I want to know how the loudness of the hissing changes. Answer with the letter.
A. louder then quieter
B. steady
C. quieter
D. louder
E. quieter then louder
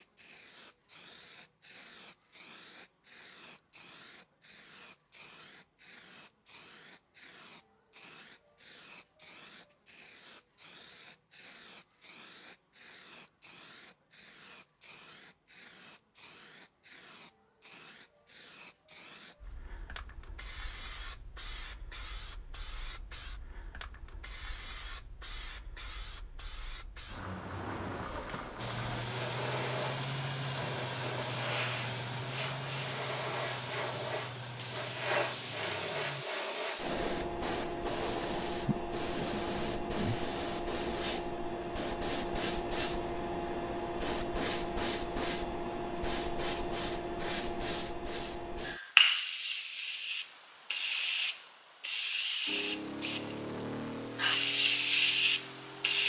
D.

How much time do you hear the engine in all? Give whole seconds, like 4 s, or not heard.
11 s.